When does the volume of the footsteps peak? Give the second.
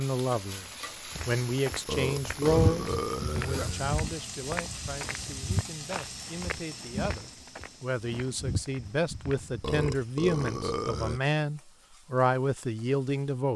3 s.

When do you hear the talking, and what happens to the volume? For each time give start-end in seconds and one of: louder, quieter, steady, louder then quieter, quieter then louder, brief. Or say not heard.
0.0-13.5 quieter then louder.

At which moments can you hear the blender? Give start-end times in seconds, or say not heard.
not heard.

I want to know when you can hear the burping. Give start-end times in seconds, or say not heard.
1.9-4.0, 9.6-11.2.